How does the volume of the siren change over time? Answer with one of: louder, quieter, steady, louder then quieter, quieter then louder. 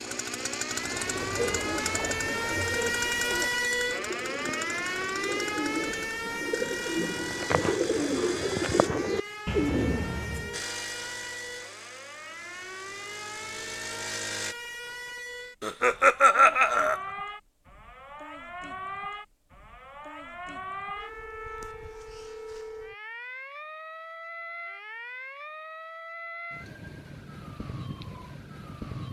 quieter.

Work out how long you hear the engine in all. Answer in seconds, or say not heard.
13 s.